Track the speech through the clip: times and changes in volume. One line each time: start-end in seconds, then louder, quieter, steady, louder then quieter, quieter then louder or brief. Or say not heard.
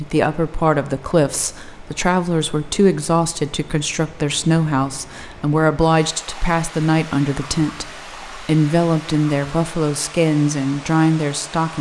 0.0-11.7 steady.